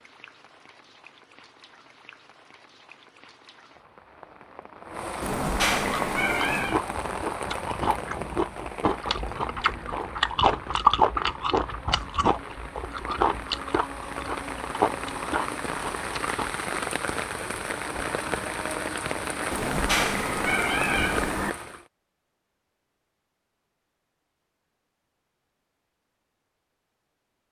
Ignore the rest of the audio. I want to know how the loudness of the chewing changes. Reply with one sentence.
The volume of the chewing goes up, then down.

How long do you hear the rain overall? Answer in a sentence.
The rain can be heard for 22 seconds in total.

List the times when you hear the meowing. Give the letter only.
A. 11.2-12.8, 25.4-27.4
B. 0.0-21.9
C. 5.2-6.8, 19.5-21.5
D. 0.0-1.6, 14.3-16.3
C.